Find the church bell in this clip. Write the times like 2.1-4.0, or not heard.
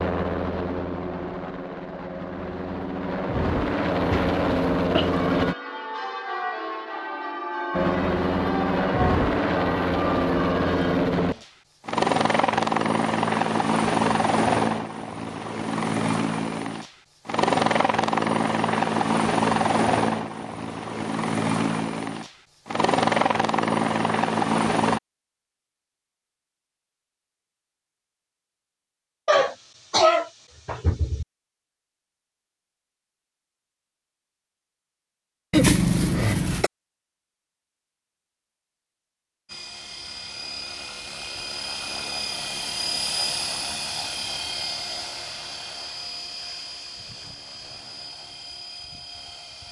5.1-11.0.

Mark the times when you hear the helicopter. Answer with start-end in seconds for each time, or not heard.
0.0-5.5, 7.7-25.0, 39.5-49.6.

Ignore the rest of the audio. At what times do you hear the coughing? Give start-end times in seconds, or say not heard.
4.1-5.5, 29.2-31.2, 35.5-36.7.